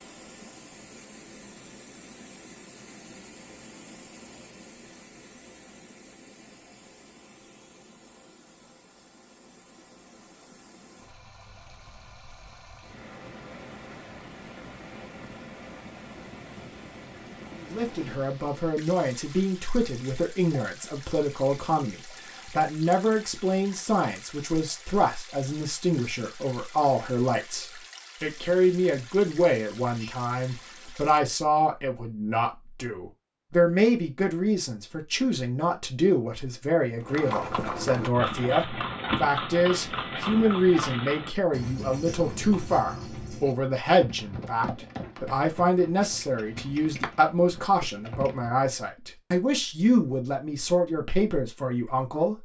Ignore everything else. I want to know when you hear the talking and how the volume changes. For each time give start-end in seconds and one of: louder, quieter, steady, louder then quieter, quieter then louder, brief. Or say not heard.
17.6-52.3 steady.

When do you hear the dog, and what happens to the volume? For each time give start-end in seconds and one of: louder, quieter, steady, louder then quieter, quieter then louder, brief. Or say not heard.
not heard.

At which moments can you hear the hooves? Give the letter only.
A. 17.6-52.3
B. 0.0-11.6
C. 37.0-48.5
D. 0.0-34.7
C.